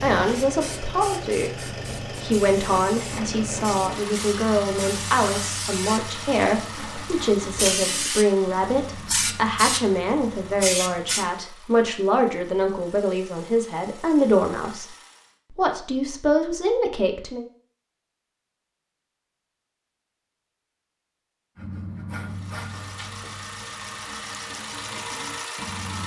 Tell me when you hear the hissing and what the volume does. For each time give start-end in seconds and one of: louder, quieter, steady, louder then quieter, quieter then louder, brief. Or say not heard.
0.2-11.2 louder.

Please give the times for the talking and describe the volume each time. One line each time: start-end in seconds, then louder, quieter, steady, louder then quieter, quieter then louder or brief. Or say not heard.
0.0-1.5 brief
2.1-14.8 steady
15.6-17.4 brief.